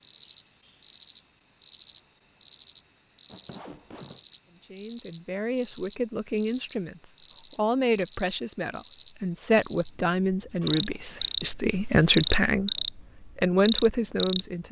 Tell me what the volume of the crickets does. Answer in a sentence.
The volume of the crickets stays about the same.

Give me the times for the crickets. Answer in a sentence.
The crickets can be heard from 0.0 to 14.4 s.